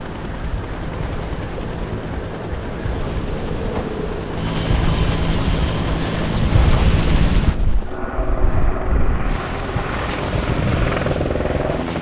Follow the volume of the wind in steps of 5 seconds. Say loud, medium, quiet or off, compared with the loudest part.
medium, loud, loud.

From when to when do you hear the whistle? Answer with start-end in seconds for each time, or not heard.
not heard.